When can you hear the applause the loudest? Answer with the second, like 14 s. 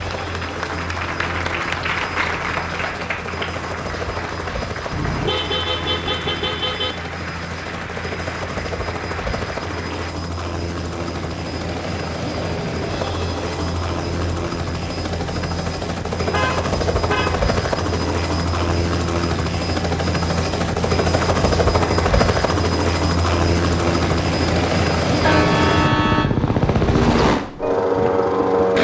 2 s.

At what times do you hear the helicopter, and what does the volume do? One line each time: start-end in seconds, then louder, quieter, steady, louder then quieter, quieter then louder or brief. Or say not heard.
0.0-28.7 louder.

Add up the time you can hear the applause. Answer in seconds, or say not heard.
10 s.